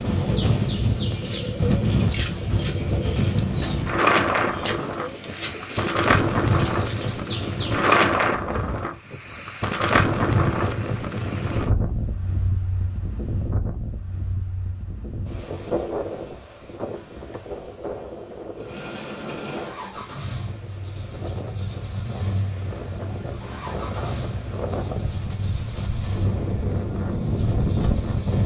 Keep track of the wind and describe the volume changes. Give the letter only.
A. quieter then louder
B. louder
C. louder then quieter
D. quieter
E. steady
A.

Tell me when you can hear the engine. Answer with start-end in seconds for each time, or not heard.
18.6-28.4.